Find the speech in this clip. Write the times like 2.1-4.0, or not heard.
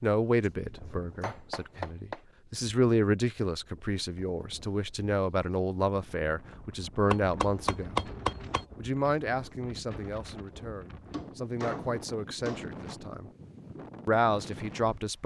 0.0-8.1, 8.8-13.3, 14.1-15.2.